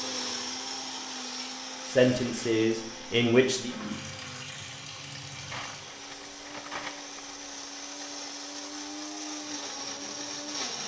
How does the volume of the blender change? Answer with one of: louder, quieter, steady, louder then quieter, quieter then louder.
quieter then louder.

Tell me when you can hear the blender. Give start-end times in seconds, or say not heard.
0.0-10.8.